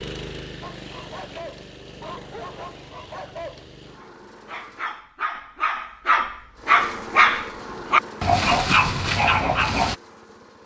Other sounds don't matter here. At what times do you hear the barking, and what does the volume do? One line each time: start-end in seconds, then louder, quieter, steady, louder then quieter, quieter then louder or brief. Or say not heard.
0.6-9.9 louder.